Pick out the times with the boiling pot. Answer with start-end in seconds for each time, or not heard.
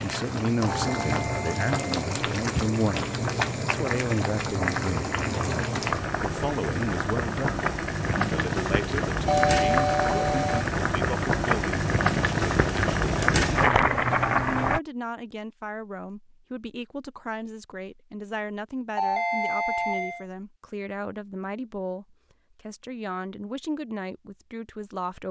0.0-14.8.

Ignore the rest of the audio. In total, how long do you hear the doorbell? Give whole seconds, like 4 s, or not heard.
4 s.